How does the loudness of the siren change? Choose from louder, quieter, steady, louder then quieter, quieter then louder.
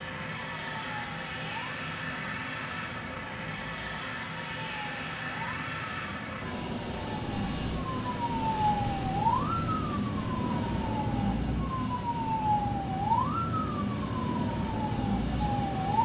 louder.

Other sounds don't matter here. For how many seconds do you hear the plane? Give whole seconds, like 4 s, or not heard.
16 s.